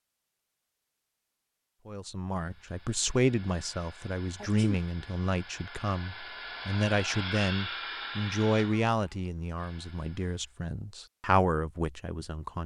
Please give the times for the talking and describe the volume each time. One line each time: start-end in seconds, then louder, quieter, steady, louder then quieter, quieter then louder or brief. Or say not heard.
1.9-12.6 steady.